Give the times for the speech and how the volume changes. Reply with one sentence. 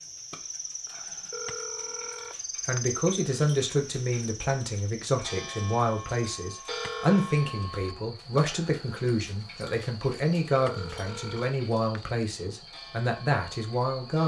You can hear the speech from 2.5 to 14.2 s, at a steady volume.